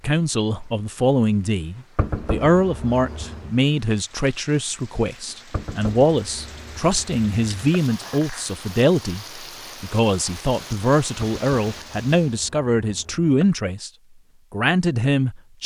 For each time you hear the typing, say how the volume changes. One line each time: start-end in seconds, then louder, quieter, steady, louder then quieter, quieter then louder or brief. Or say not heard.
not heard.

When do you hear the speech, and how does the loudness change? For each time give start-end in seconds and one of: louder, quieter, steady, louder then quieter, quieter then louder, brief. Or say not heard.
0.0-13.9 steady
14.5-15.6 brief.